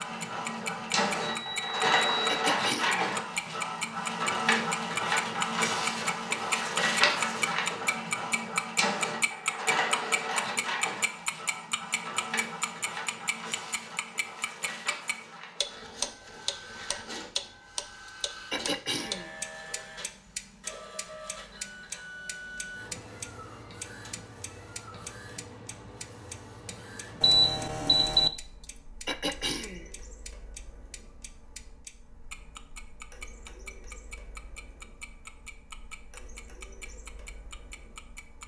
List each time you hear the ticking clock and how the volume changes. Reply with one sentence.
You can hear the ticking clock from 0.0 to 38.4 s, getting quieter.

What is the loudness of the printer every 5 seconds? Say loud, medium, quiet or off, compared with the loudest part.
loud, loud, medium, quiet, quiet, quiet, quiet, quiet.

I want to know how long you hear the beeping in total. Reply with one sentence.
The beeping can be heard for 2 seconds in total.